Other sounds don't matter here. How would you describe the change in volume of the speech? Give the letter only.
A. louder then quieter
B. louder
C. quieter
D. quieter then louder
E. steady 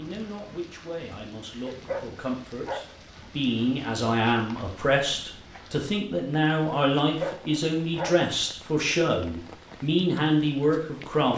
B.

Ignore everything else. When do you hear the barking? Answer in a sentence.
The barking can be heard from 1.9 to 3.1 s and from 7.2 to 8.6 s.